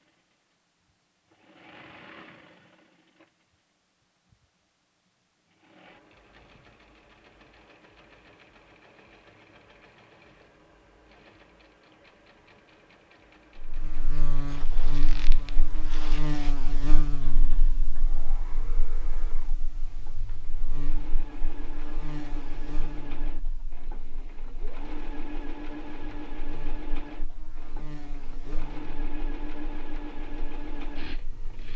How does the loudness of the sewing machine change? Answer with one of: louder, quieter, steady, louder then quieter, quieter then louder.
louder.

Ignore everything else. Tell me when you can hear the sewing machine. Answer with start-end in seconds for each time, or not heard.
0.0-31.7.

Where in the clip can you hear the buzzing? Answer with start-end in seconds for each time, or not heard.
13.6-31.7.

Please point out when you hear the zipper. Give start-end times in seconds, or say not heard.
14.4-16.6.